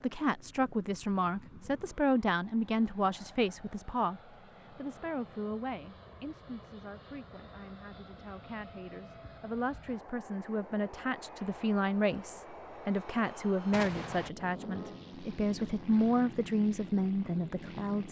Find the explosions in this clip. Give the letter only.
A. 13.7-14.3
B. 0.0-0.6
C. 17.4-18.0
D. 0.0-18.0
A.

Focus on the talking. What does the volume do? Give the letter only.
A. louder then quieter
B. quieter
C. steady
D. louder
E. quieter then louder
E.